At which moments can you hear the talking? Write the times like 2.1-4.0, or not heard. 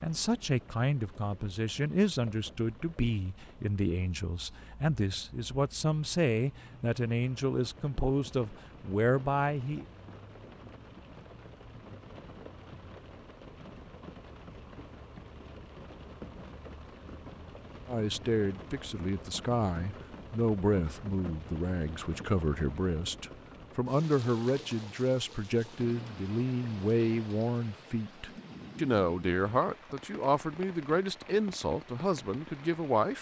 0.0-9.8, 17.9-33.1.